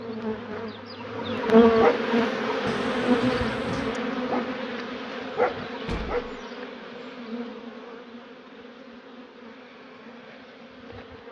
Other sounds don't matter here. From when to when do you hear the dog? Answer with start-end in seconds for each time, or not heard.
not heard.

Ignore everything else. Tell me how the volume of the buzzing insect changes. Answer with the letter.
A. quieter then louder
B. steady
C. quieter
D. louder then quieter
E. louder
C.